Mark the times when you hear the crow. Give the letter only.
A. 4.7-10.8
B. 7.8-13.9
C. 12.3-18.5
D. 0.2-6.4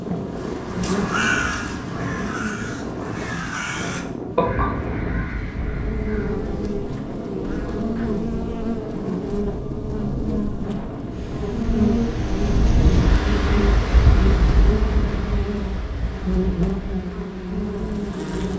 D.